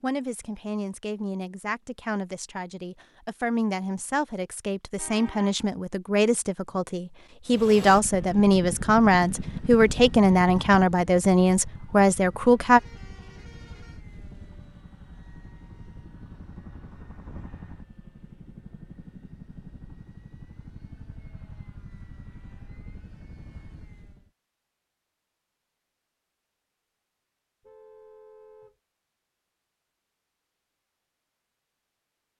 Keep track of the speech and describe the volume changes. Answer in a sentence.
The loudness of the speech goes up.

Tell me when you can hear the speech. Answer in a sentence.
The speech can be heard from 0.0 to 12.8 s.